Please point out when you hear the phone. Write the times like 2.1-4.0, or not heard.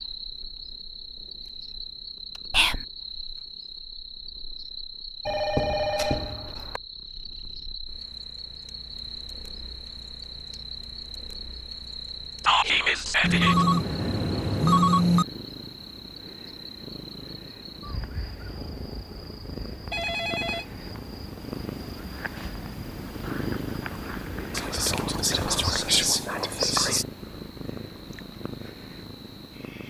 5.2-6.8, 13.2-15.2, 19.9-21.4.